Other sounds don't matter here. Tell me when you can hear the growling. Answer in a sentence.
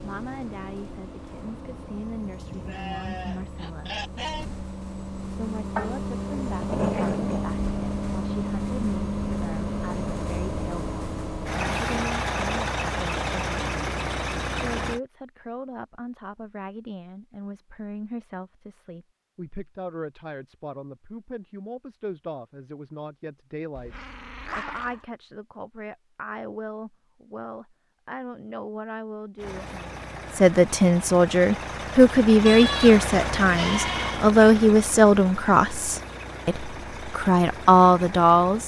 The growling can be heard from 5.8 to 7.5 s and from 23.8 to 25.1 s.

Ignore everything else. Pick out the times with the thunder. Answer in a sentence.
The thunder can't be heard in this clip.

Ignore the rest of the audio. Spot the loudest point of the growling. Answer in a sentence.
The volume of the growling peaks at 7 seconds.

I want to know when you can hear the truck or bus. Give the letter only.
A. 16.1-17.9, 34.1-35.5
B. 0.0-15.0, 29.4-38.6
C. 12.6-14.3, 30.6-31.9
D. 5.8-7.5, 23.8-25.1
B.